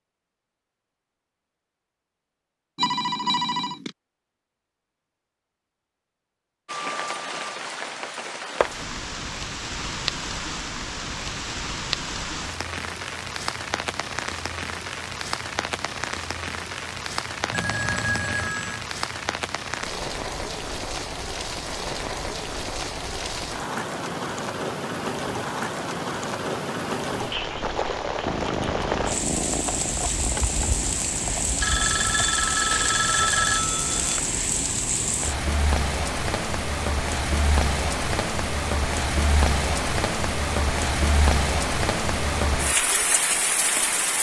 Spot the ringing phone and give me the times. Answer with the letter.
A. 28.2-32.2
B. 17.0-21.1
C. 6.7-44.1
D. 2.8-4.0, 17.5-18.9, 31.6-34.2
D.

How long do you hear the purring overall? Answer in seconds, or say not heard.
4 s.